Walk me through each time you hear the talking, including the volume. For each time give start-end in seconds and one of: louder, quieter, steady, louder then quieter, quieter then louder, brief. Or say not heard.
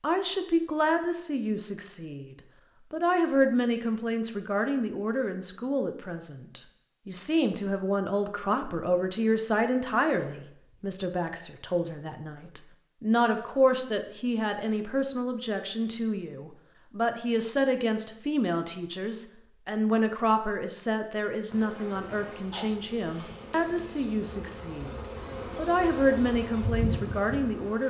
0.0-27.8 steady.